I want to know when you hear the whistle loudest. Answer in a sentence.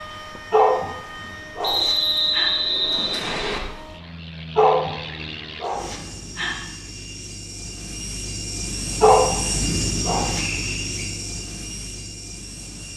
The loudest moment of the whistle is at 2 seconds.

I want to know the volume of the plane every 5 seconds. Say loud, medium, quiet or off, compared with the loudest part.
medium, loud, loud.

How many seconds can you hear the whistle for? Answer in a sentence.
You can hear the whistle for 3 seconds altogether.